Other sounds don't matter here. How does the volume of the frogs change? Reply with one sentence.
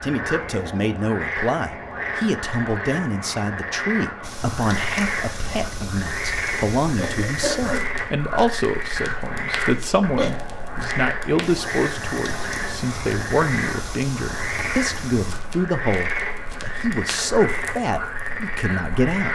The loudness of the frogs stays about the same.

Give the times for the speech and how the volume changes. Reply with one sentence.
The speech can be heard from 0.0 to 19.2 s, at a steady volume.